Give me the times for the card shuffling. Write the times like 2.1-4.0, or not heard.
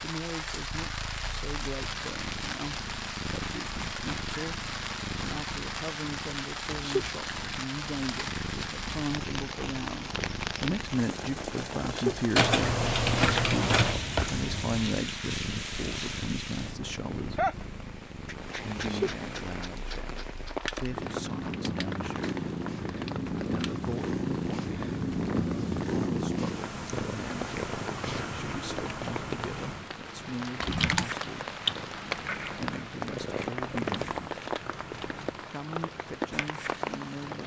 12.7-14.8.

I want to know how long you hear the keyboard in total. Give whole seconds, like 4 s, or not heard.
3 s.